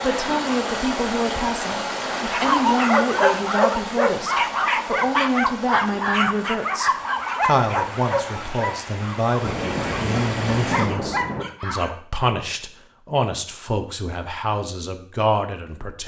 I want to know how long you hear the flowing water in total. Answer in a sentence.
You can hear the flowing water for 11 seconds altogether.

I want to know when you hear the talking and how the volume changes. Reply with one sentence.
You can hear the talking from 0.0 to 16.0 s, at a steady volume.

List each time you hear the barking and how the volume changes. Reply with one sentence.
The barking can be heard from 2.3 to 11.9 s, getting quieter.